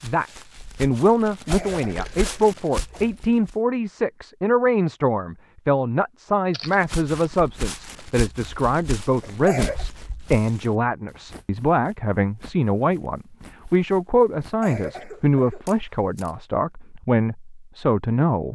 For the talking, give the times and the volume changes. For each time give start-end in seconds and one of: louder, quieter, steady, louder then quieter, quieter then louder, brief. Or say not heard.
0.0-18.5 steady.